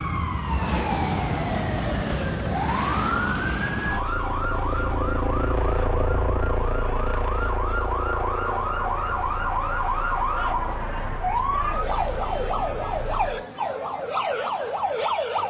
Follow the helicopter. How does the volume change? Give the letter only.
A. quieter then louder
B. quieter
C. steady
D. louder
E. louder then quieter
B.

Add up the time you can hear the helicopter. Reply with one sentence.
The helicopter can be heard for 13 seconds in total.